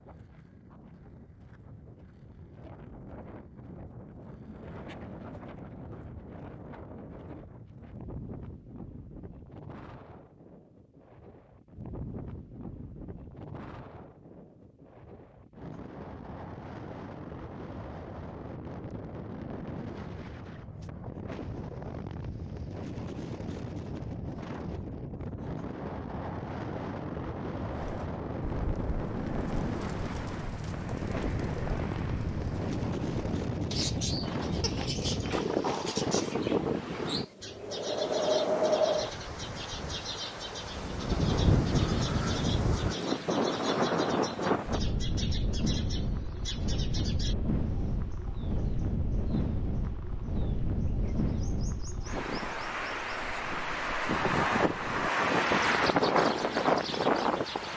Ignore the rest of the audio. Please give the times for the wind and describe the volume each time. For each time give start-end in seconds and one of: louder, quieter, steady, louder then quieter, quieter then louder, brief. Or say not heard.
0.0-57.7 louder.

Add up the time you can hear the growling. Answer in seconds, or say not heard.
2 s.